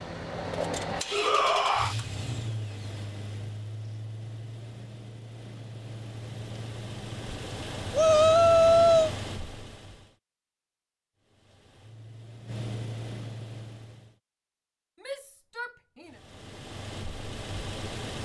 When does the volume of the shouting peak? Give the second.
9 s.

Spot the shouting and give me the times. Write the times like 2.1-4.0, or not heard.
1.1-1.9, 7.9-9.1, 15.0-16.2.